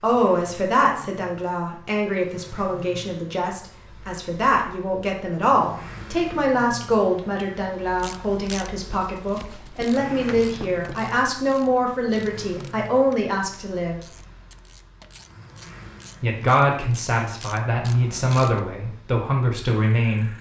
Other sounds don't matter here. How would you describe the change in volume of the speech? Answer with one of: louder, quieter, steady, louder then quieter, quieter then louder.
steady.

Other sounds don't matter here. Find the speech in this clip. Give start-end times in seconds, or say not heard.
0.0-14.0, 16.2-20.3.